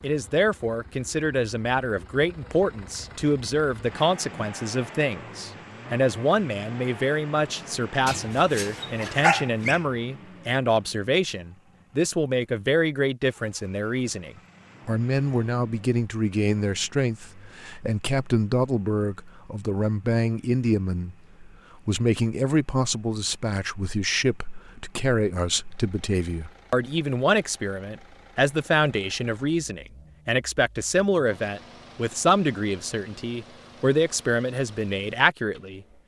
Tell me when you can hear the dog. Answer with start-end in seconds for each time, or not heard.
8.1-9.8.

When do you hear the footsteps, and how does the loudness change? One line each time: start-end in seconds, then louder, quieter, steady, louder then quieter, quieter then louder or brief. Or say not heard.
not heard.